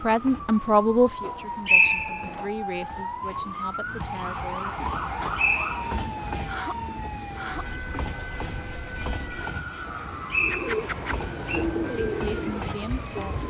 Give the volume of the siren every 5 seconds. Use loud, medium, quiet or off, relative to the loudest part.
loud, loud, medium.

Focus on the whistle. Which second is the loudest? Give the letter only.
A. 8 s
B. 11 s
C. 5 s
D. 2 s
D.